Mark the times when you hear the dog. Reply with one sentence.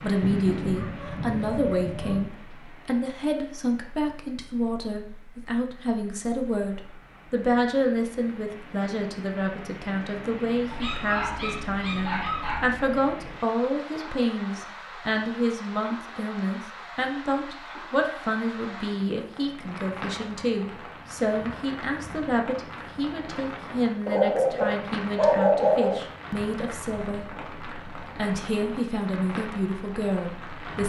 The dog can be heard from 0.2 to 2.3 s, from 10.7 to 12.7 s and from 24.1 to 26.1 s.